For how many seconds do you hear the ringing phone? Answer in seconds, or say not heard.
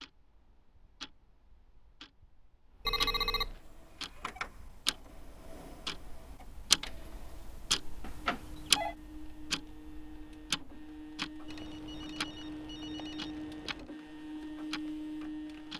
4 s.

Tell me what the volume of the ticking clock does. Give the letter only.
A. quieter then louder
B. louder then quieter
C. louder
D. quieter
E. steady
B.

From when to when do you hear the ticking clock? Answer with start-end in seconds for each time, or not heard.
0.0-15.7.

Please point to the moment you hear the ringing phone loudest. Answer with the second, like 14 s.
3 s.